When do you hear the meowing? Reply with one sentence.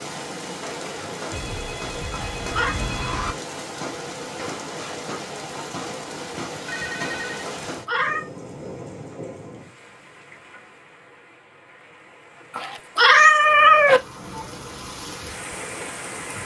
You can hear the meowing from 2.1 to 2.8 s, from 7.7 to 8.2 s and from 12.6 to 14.0 s.